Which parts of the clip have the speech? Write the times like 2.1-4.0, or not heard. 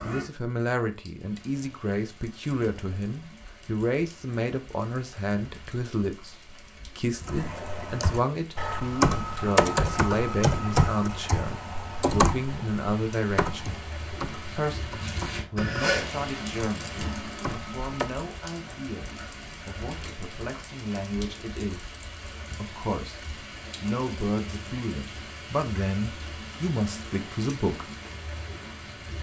0.0-13.8, 14.5-21.9, 22.6-23.2, 23.8-27.9.